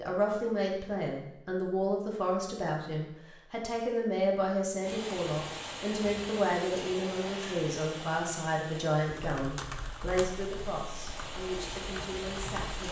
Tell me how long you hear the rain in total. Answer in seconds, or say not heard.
8 s.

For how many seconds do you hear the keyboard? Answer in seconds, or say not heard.
4 s.